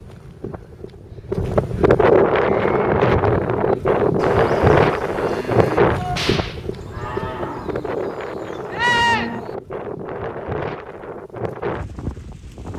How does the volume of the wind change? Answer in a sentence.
The volume of the wind goes down.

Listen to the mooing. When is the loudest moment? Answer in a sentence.
The volume of the mooing peaks at 9 seconds.